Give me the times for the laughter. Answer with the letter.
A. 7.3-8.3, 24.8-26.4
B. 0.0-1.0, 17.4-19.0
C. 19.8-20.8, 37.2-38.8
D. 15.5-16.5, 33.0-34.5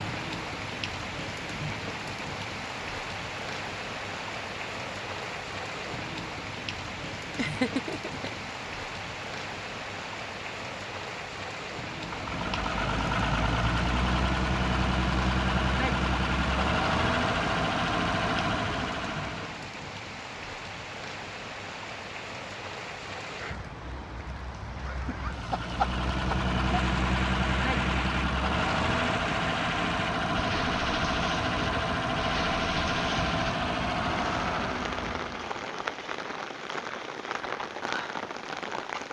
A.